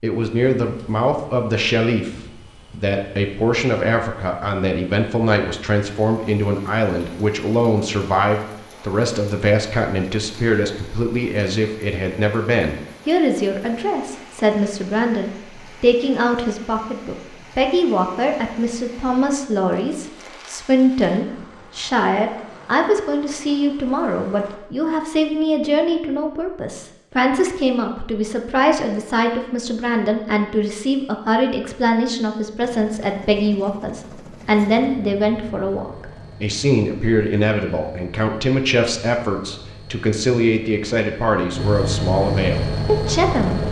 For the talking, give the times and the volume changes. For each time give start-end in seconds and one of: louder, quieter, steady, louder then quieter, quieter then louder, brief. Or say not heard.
0.0-43.6 steady.